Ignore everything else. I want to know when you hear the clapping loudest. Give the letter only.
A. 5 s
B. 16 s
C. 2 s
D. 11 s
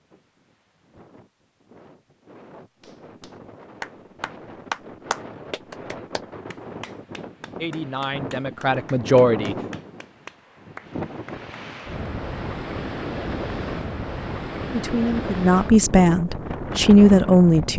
A.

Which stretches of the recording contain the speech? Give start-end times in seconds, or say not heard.
7.6-9.7, 14.7-17.7.